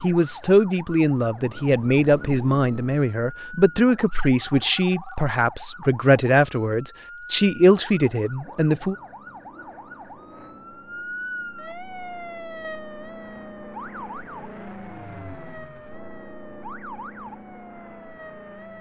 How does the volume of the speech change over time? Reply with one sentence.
The volume of the speech stays about the same.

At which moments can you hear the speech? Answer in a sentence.
You can hear the speech from 0.0 to 8.9 s.